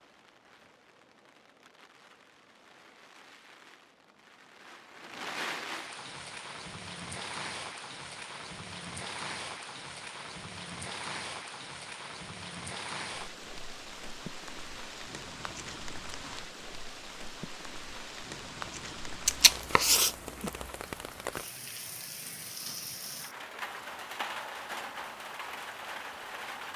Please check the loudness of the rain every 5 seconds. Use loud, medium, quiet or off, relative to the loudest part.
quiet, loud, loud, loud, loud, loud.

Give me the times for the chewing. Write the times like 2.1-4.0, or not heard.
19.2-20.7.